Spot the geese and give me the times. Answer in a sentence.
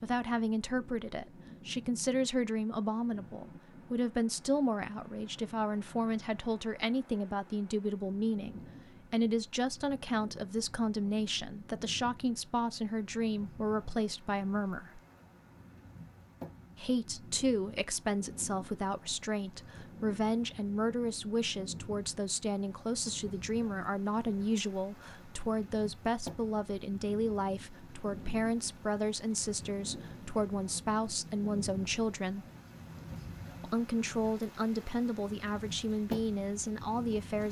You can't hear the geese here.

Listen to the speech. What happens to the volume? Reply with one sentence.
The volume of the speech stays about the same.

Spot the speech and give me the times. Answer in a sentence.
You can hear the speech from 0.0 to 15.0 s, from 16.8 to 32.5 s and from 33.6 to 37.4 s.